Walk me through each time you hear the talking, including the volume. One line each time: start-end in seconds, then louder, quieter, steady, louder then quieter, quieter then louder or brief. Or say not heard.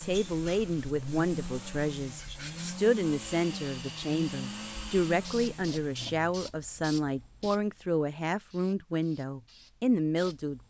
0.0-10.6 steady.